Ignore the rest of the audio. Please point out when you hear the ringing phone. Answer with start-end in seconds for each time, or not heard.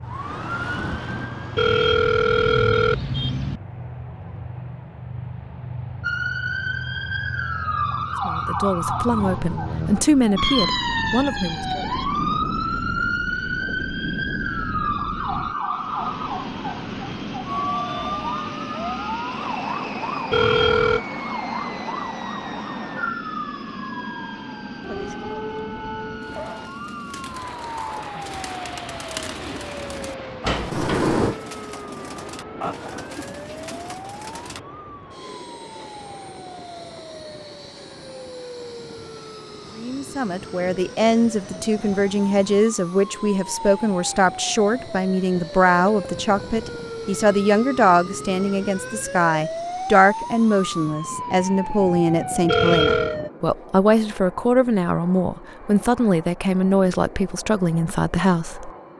1.6-3.6, 20.3-21.0, 52.5-53.1.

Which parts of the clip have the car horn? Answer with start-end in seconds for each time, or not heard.
not heard.